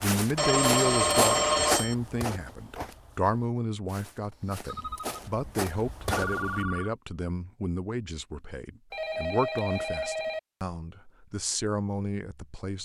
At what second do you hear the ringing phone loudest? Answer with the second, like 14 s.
1 s.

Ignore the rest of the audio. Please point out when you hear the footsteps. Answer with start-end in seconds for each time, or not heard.
0.0-6.6.